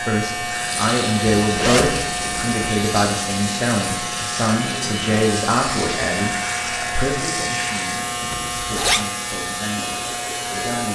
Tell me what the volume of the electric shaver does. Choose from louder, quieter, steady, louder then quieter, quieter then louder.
steady.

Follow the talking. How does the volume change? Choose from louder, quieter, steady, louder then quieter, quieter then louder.
quieter.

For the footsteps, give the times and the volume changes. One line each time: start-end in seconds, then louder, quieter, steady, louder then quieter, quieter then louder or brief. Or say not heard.
not heard.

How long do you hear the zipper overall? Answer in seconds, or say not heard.
2 s.